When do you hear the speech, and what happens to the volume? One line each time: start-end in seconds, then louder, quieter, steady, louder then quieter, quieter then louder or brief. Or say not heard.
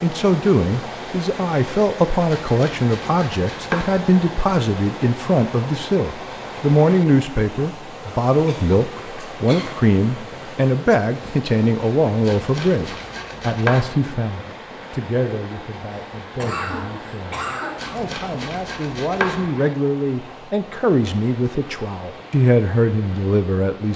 0.0-23.9 quieter then louder.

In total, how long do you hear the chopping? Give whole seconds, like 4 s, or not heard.
5 s.